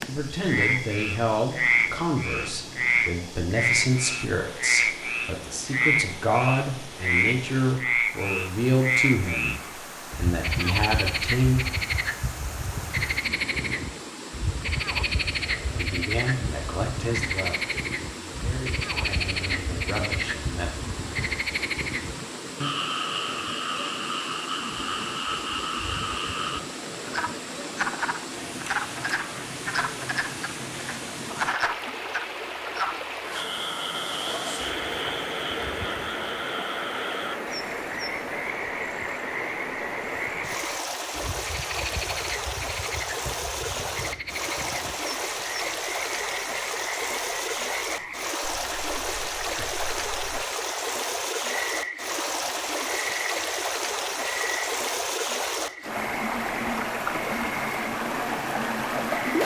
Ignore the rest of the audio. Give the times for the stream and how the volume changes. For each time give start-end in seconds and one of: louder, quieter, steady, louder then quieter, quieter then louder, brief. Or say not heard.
0.0-59.4 louder.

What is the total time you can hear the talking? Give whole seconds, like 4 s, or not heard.
17 s.